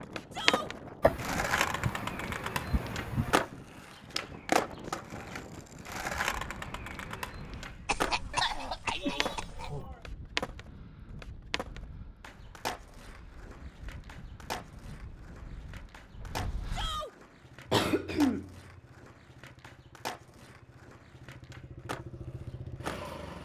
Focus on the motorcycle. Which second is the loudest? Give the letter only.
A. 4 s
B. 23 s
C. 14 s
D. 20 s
B.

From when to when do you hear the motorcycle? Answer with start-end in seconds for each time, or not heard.
17.1-23.4.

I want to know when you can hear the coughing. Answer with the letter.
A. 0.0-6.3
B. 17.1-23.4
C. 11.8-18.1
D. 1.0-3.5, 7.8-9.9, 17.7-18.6
D.